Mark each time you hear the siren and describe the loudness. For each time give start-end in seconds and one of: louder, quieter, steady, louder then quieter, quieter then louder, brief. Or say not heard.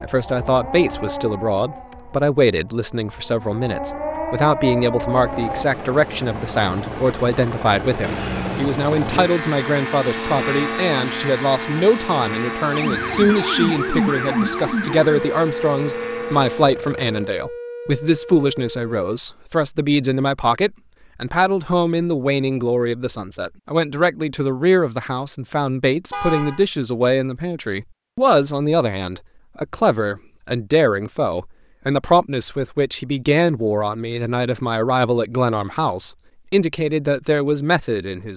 0.0-5.7 quieter then louder
12.7-19.1 quieter.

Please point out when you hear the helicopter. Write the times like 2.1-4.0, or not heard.
5.2-17.3.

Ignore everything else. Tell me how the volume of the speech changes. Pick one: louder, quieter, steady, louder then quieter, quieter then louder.
steady.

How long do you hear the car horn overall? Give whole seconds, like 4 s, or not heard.
2 s.